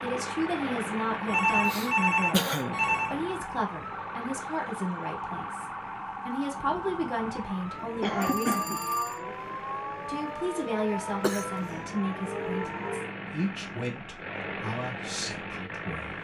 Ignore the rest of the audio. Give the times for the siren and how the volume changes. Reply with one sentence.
You can hear the siren from 0.0 to 13.2 s, at a steady volume.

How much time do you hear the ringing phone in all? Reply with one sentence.
You can hear the ringing phone for 4 seconds altogether.